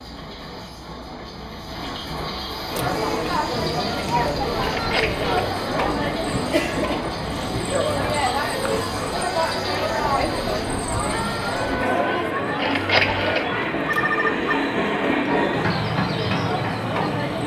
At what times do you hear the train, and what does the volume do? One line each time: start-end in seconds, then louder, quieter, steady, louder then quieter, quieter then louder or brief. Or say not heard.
0.0-17.4 louder.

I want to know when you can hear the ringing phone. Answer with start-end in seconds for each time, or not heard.
4.6-5.5, 12.6-14.5.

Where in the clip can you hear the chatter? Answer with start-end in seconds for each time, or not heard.
2.6-17.4.